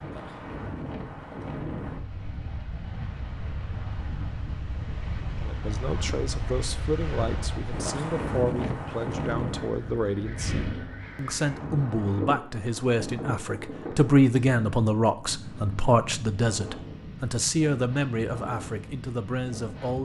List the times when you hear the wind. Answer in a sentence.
You can hear the wind from 0.0 to 20.0 s.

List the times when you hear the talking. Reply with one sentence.
The talking can be heard from 5.4 to 20.0 s.